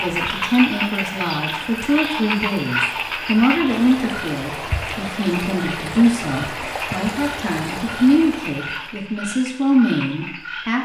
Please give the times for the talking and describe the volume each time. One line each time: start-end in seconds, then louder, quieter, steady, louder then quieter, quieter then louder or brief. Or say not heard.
0.0-10.8 steady.